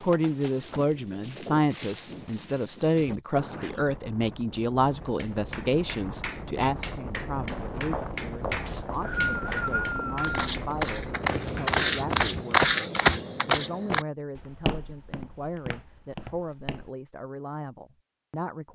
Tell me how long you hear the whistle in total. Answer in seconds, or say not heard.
2 s.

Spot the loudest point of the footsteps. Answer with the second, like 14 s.
13 s.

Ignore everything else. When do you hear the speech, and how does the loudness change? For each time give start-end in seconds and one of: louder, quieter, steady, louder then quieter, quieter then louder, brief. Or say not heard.
0.0-18.7 quieter.